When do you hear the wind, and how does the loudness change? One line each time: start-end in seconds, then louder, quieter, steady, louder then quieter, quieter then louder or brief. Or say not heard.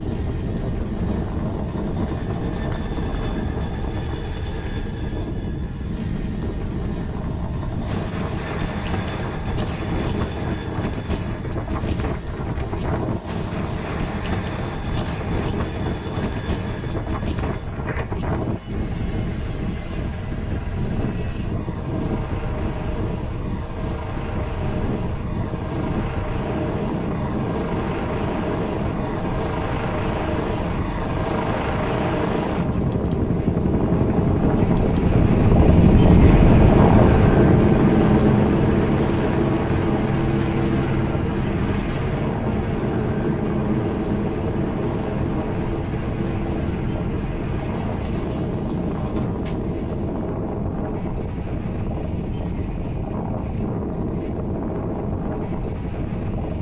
0.0-56.5 louder then quieter.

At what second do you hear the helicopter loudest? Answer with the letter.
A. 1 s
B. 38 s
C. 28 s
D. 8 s
B.